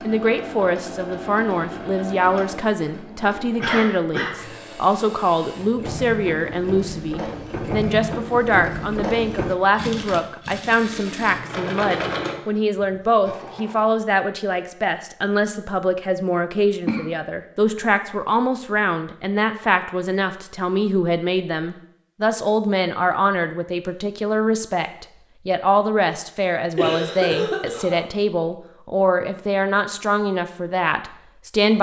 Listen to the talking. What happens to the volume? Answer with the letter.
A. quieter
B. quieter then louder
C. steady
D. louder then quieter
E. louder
C.